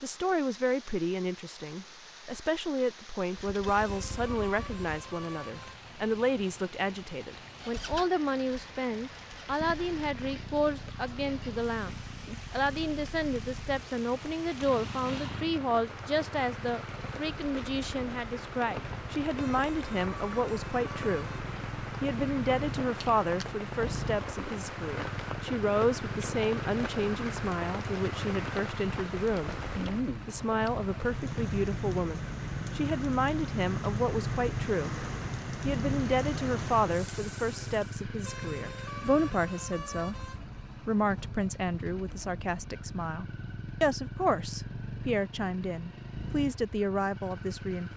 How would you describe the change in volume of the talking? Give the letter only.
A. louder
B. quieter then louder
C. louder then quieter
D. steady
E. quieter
D.